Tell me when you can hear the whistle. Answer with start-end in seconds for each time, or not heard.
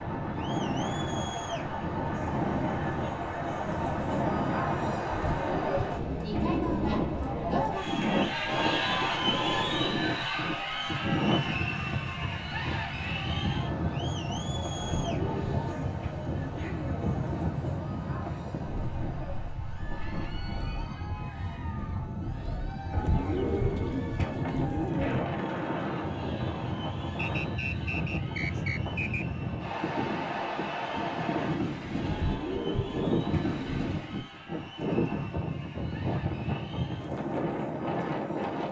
27.1-29.2.